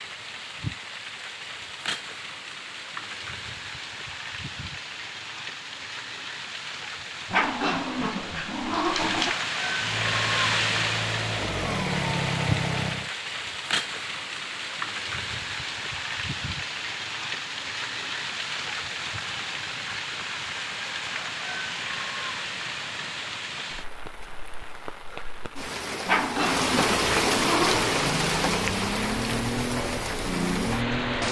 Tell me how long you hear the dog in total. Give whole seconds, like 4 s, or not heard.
4 s.